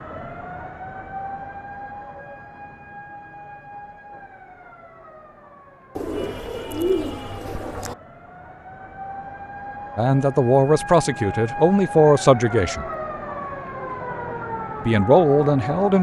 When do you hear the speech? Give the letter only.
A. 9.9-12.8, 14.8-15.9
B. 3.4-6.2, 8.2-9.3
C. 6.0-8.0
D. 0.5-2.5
A.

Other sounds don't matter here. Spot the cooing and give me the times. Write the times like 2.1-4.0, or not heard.
6.0-8.0.